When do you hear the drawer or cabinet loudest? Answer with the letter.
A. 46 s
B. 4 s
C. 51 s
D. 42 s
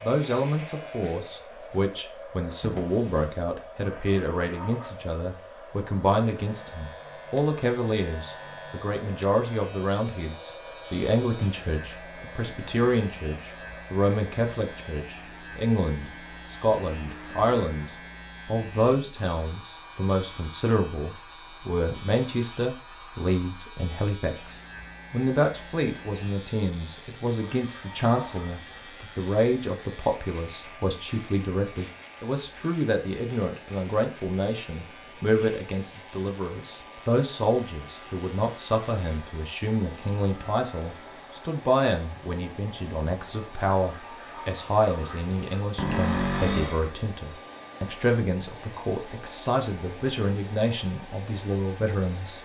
A.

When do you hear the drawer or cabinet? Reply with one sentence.
The drawer or cabinet can be heard from 2.6 to 3.4 s and from 45.8 to 46.9 s.